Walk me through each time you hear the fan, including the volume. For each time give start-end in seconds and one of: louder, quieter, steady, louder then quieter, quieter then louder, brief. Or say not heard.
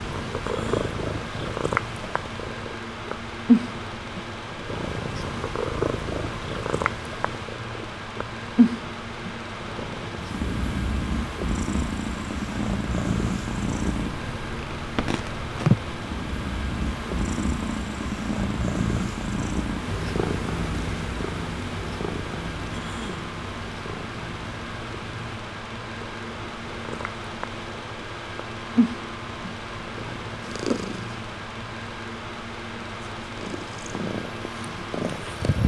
0.0-35.6 steady.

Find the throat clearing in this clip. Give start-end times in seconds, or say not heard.
0.4-1.0, 22.7-23.3.